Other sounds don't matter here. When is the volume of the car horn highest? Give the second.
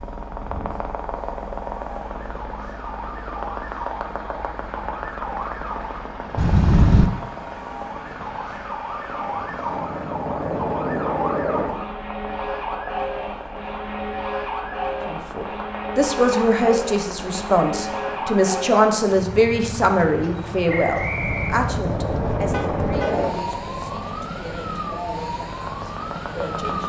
7 s.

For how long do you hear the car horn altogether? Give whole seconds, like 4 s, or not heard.
3 s.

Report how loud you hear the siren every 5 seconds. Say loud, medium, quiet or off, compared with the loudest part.
medium, loud, loud, loud, loud, loud.